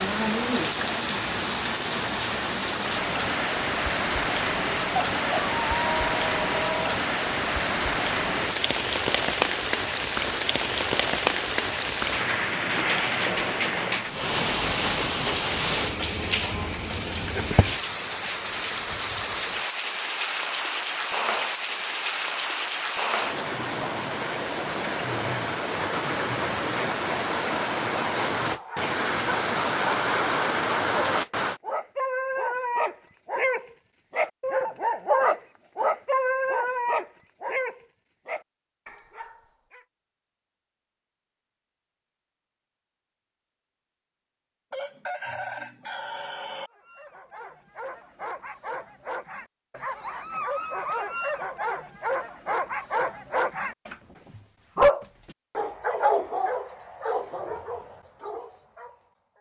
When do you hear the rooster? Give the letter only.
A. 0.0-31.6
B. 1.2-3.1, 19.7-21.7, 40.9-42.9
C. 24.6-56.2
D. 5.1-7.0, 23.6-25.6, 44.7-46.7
D.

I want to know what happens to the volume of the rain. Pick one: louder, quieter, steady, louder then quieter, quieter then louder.
steady.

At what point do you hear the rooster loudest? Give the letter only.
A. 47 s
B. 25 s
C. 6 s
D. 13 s
C.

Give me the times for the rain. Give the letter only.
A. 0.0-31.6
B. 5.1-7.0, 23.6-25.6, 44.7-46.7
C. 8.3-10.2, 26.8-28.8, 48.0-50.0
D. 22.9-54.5
A.